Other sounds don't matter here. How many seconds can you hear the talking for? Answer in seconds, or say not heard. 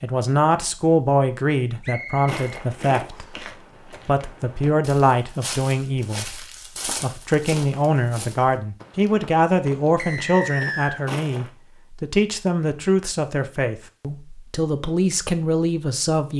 16 s.